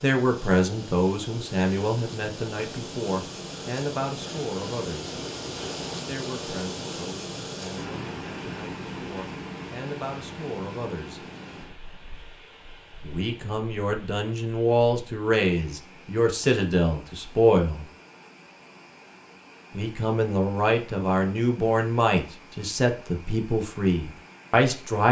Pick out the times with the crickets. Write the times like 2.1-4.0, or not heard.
not heard.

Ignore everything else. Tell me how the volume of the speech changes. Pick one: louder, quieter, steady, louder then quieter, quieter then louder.
quieter then louder.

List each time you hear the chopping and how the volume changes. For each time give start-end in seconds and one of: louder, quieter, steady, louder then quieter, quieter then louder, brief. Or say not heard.
not heard.